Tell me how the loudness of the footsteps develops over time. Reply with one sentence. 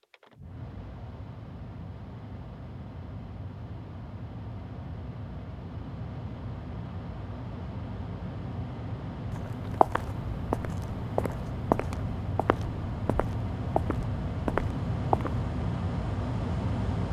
The volume of the footsteps goes down, then up.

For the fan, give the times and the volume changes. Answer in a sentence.
You can hear the fan from 0.0 to 17.0 s, getting louder.